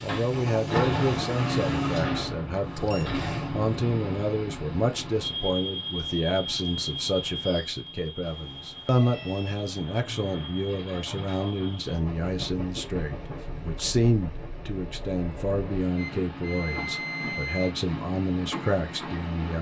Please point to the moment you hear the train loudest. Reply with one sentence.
The loudest moment of the train is at 1 second.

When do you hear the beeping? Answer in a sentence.
You can hear the beeping from 2.6 to 3.2 s, from 8.2 to 9.6 s and from 15.9 to 17.8 s.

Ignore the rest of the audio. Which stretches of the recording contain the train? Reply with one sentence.
The train can be heard from 0.0 to 19.5 s.